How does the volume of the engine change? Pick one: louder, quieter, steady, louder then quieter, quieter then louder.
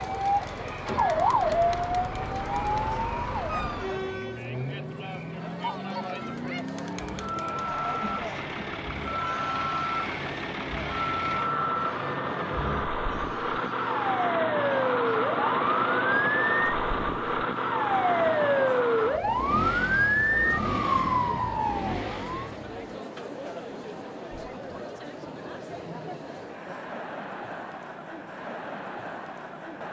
louder then quieter.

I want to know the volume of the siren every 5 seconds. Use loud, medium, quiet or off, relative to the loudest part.
loud, medium, medium, loud, loud, off.